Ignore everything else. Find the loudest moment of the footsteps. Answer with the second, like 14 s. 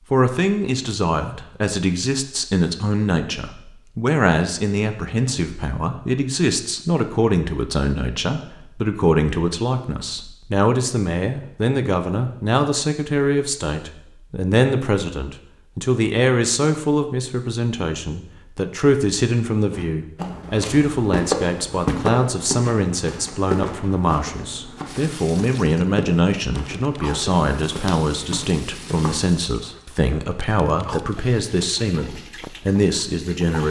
22 s.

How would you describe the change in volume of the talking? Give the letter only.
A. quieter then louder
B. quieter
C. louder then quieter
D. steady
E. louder
D.